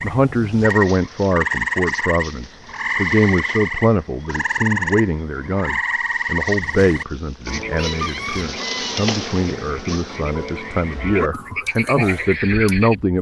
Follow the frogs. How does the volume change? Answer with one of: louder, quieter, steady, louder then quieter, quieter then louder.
quieter then louder.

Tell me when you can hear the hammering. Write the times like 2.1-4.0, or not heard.
not heard.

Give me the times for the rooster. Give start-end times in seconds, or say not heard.
7.8-9.1.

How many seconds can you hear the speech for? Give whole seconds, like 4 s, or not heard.
13 s.